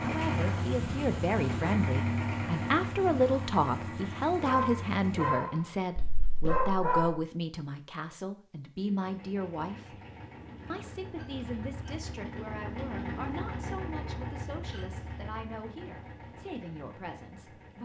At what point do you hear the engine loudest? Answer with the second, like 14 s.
2 s.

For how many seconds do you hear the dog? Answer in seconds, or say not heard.
3 s.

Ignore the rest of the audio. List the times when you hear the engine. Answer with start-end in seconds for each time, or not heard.
0.0-5.3, 8.8-17.8.